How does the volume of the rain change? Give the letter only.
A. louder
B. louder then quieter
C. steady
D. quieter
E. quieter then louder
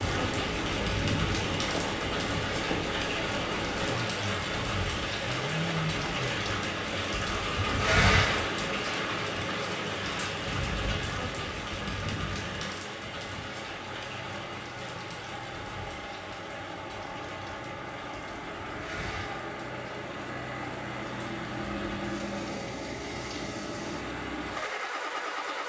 D.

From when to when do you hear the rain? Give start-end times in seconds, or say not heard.
0.0-25.6.